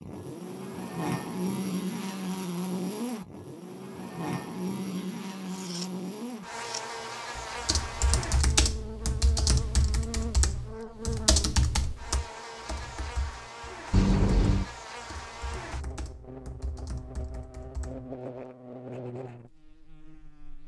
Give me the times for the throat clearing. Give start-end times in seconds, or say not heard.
not heard.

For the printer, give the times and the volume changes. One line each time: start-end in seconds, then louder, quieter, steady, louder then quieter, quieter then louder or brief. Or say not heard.
not heard.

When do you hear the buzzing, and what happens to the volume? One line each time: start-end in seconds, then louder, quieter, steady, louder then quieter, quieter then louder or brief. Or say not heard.
0.0-20.6 quieter.